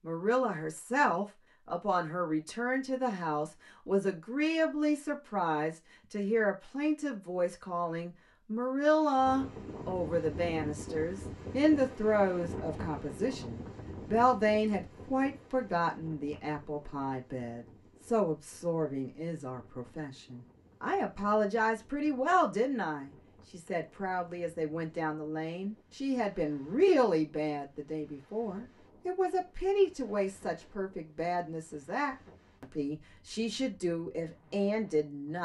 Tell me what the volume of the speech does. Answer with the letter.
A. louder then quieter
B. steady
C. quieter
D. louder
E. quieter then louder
B.